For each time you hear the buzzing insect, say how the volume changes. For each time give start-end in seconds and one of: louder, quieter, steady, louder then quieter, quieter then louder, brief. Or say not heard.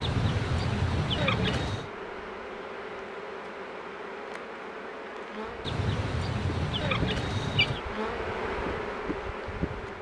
0.0-9.9 louder.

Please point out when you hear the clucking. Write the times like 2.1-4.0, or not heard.
0.0-1.9, 5.7-7.8.